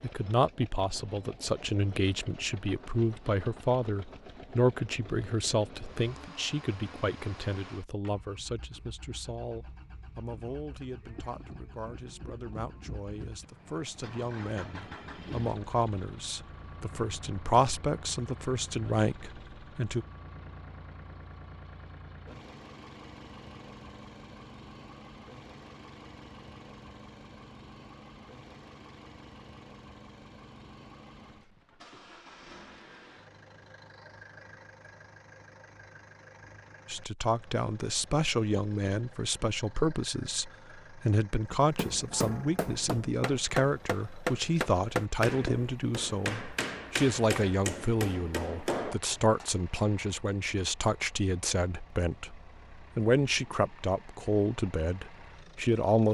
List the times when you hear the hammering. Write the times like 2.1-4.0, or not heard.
41.5-49.5.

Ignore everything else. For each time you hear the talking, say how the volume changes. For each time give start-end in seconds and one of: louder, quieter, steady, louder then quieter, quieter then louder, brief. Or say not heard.
0.0-20.1 quieter then louder
36.9-56.0 steady.